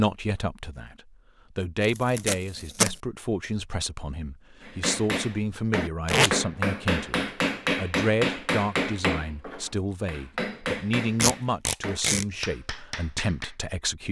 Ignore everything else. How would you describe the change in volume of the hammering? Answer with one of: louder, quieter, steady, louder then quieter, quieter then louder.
quieter.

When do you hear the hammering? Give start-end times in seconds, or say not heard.
4.6-13.6.